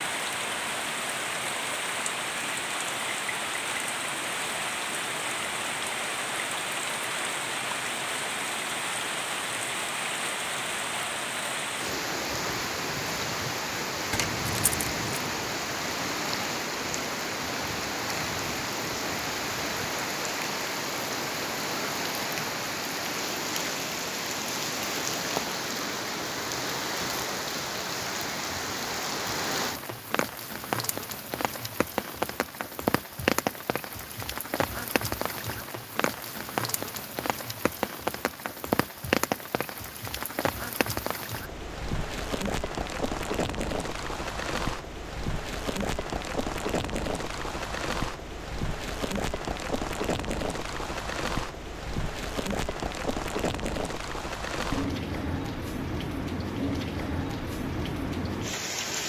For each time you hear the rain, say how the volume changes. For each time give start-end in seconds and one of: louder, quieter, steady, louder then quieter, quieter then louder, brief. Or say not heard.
0.0-59.0 steady.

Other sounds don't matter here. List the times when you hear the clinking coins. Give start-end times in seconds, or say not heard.
14.1-15.2.